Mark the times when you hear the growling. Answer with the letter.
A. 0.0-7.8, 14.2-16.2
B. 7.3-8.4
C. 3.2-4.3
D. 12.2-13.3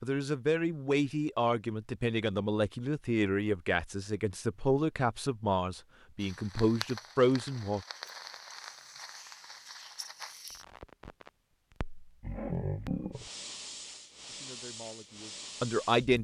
D.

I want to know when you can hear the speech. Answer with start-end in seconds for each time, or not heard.
0.0-7.8, 14.2-16.2.